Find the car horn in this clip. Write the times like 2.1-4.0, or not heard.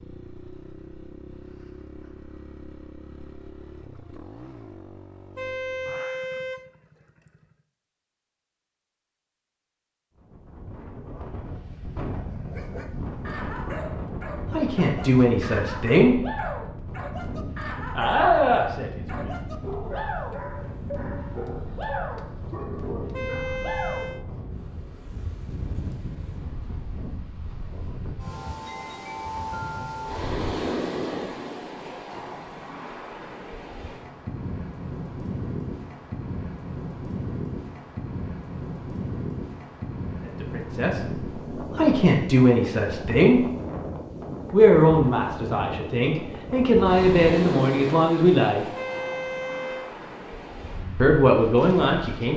5.3-6.7, 23.1-24.2, 48.8-50.0.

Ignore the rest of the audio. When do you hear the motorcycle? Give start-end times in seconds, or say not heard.
0.0-7.6.